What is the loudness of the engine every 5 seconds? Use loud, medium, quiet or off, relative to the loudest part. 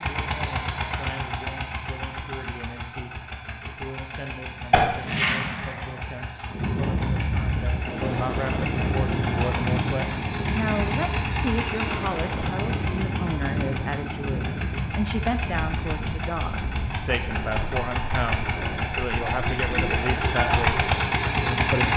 medium, medium, medium, medium, loud.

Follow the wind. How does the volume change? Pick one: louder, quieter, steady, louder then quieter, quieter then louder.
quieter.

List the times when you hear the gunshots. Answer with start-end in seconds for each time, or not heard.
4.7-6.0.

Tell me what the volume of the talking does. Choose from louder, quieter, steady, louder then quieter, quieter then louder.
louder.